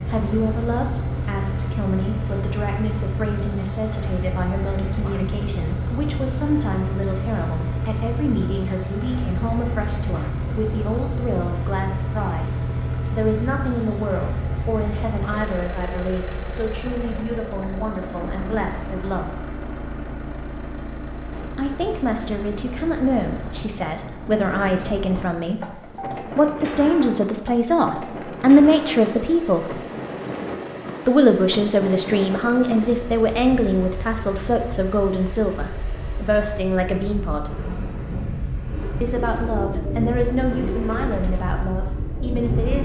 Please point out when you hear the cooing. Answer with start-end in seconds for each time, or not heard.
38.8-42.6.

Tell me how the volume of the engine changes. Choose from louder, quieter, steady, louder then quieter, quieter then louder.
quieter.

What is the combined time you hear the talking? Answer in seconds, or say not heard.
38 s.